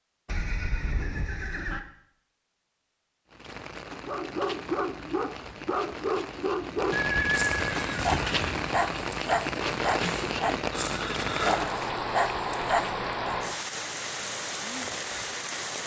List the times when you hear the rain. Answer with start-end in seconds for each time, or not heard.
3.3-15.8.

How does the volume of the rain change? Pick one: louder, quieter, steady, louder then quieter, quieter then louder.
louder.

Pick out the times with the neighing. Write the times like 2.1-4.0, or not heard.
0.2-1.8, 6.9-8.7, 10.7-11.7.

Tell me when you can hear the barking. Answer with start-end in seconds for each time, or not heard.
3.9-13.4.